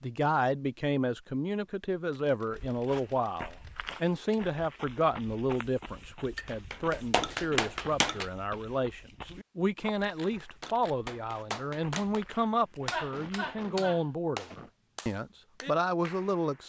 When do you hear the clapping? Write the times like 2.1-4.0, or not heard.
6.3-8.3, 10.2-16.6.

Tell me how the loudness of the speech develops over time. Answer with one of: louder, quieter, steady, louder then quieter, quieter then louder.
steady.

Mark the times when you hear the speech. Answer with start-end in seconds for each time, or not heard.
0.0-16.6.